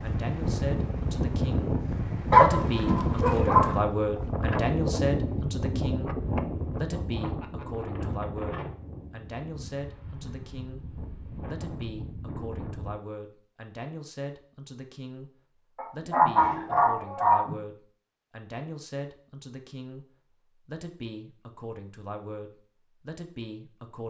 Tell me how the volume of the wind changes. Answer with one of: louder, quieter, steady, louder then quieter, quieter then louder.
quieter.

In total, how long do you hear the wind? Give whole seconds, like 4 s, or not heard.
13 s.